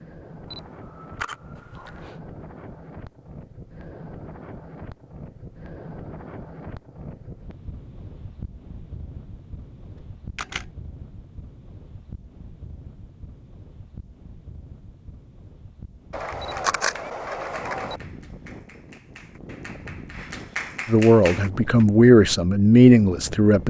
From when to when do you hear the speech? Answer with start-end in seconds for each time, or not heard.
20.9-23.6.